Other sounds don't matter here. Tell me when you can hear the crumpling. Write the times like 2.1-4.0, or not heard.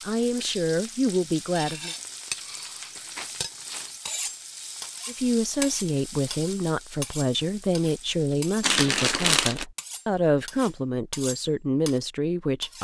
1.9-4.0, 8.6-9.7.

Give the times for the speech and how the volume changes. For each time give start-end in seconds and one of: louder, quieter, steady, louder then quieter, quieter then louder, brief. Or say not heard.
0.0-1.9 brief
5.0-12.7 steady.